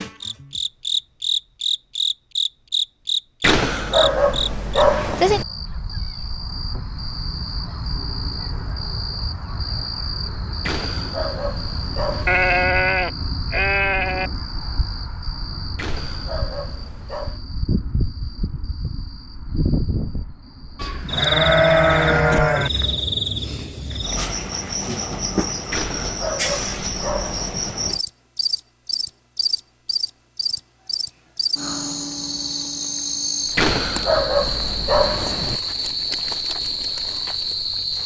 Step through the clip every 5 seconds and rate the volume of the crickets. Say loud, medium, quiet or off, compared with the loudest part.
loud, medium, medium, medium, loud, loud, loud, loud.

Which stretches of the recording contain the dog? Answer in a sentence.
You can hear the dog from 3.4 to 5.5 s, from 10.7 to 12.7 s, from 15.8 to 17.4 s, from 25.7 to 27.8 s and from 33.5 to 35.6 s.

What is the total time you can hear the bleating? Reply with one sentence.
You can hear the bleating for 4 seconds altogether.